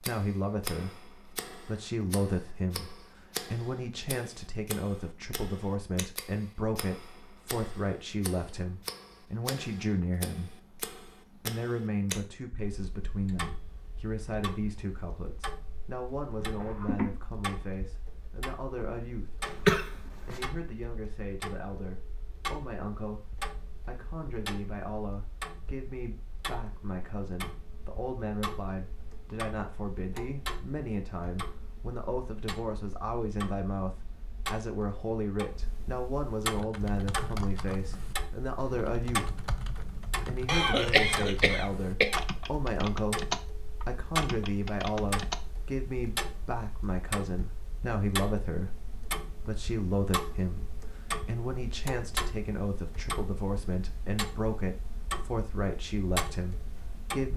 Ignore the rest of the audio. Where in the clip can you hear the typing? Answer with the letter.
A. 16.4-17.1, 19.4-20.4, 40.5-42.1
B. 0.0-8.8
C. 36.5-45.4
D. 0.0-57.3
C.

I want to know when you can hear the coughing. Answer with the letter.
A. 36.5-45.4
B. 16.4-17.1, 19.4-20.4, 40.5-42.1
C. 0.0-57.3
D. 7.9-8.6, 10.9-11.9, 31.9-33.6
B.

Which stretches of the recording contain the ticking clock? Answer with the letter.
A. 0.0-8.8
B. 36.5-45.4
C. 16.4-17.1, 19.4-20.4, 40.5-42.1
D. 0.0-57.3
D.